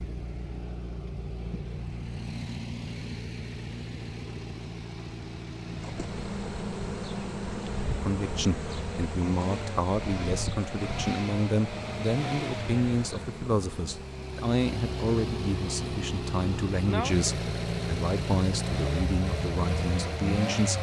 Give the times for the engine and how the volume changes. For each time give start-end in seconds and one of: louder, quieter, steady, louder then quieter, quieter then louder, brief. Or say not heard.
0.0-20.7 louder.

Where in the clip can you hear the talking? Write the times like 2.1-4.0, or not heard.
8.0-20.7.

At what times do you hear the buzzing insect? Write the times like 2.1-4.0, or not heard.
5.7-14.2.